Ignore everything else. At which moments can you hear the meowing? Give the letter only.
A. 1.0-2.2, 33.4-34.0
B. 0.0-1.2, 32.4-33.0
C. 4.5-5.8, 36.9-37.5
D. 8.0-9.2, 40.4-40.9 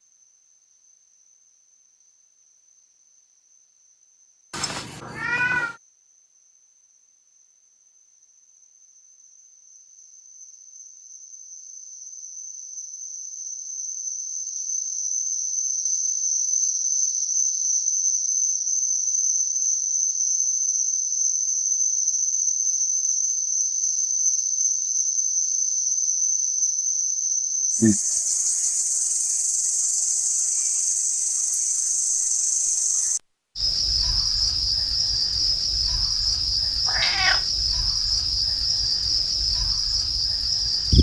C.